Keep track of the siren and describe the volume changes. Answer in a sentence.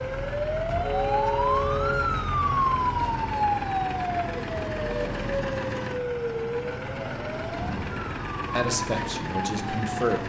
The volume of the siren goes down.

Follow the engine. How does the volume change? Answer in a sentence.
The volume of the engine stays about the same.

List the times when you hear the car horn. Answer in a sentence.
You can hear the car horn from 0.8 to 2.1 s and from 7.5 to 8.2 s.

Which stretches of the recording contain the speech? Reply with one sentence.
You can hear the speech from 8.6 to 10.2 s.